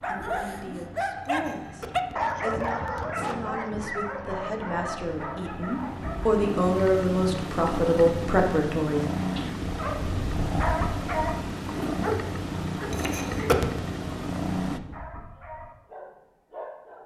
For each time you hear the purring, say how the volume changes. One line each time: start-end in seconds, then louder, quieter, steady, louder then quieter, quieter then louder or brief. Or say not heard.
0.0-14.8 louder.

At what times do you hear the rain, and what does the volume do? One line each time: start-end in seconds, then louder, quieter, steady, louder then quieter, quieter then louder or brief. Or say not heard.
not heard.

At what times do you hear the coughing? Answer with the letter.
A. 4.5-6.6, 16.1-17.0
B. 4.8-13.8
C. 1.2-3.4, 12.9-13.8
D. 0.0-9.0
C.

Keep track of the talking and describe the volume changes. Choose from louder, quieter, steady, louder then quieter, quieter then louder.
louder.